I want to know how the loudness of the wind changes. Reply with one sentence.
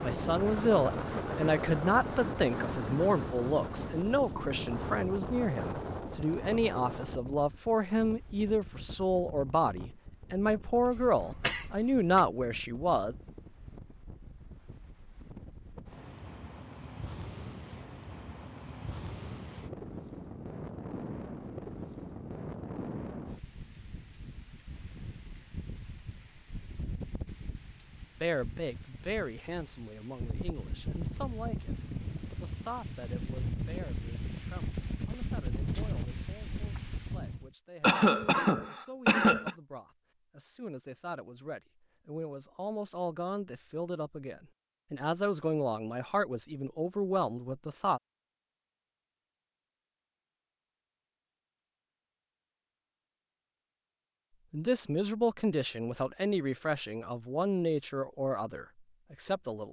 The volume of the wind goes down, then up.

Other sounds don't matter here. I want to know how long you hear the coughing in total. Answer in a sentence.
The coughing can be heard for 3 seconds in total.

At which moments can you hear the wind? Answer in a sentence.
The wind can be heard from 0.0 to 37.5 s.